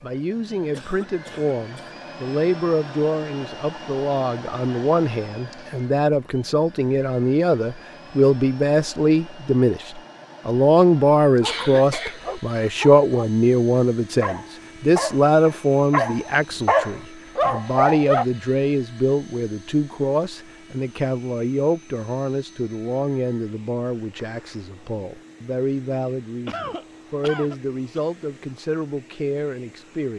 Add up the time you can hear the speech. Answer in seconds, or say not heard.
30 s.